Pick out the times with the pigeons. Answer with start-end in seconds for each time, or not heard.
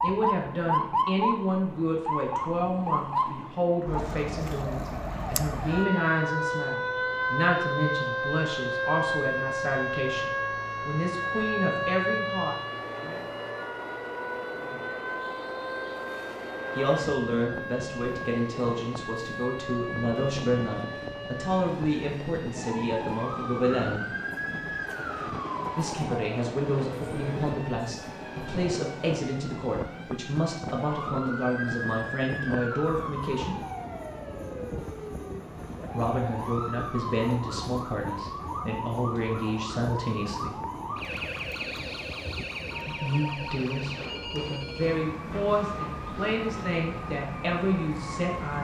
not heard.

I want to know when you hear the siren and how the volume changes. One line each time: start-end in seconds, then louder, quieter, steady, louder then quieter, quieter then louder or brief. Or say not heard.
0.0-48.5 quieter.